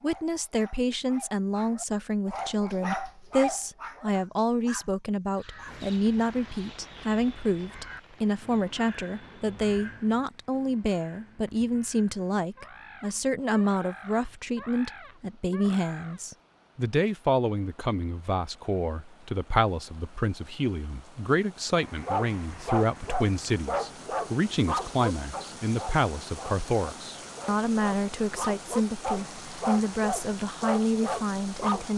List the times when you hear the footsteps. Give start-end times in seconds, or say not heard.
not heard.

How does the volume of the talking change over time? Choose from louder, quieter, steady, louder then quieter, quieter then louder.
steady.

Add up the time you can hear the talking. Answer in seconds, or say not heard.
32 s.